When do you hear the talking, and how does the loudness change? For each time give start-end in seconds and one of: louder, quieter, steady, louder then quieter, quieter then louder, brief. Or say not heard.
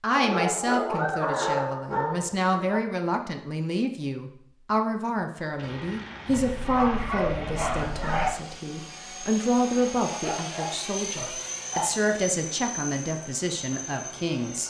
0.0-14.6 steady.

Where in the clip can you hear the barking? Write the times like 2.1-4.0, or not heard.
0.1-2.8, 6.2-8.3, 10.1-11.9.